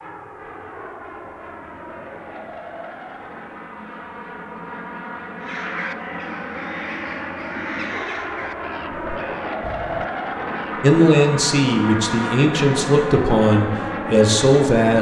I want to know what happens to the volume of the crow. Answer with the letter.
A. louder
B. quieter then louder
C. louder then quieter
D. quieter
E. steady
D.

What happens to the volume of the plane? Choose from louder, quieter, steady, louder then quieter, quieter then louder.
louder.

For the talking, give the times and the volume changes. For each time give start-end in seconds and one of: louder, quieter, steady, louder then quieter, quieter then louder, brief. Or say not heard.
10.8-14.9 steady.